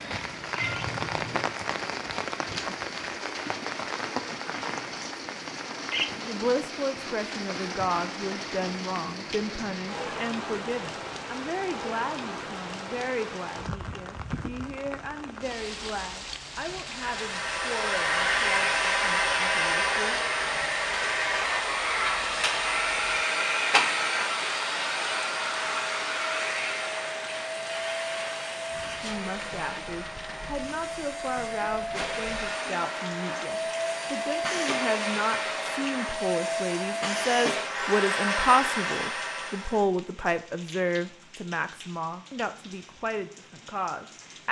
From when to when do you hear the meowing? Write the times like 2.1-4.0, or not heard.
0.6-1.6.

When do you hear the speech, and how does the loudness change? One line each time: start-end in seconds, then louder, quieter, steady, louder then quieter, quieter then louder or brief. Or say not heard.
6.2-20.2 quieter
29.0-44.4 louder then quieter.